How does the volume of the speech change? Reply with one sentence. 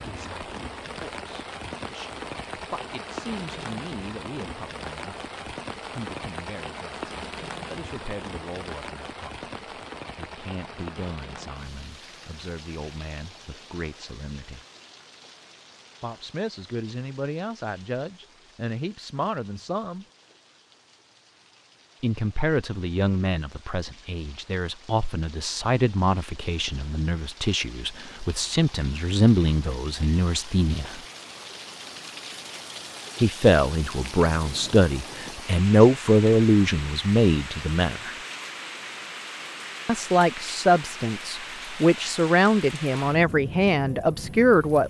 The loudness of the speech goes up.